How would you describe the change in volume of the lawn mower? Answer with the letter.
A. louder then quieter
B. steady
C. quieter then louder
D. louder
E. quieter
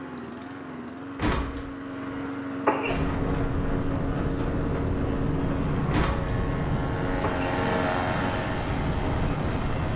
D.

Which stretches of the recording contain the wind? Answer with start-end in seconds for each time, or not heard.
2.9-9.9.